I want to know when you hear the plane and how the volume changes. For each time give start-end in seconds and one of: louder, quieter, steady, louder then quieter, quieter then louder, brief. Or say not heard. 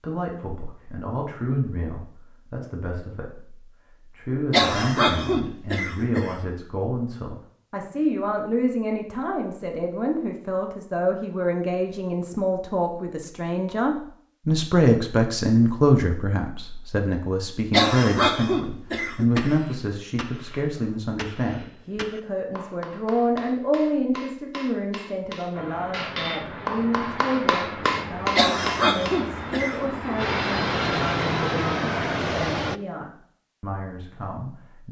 25.5-32.8 louder.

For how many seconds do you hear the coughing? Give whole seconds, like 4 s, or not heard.
5 s.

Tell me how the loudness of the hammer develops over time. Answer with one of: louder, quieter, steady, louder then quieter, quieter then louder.
louder.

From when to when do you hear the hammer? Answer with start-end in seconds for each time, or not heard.
19.3-29.4.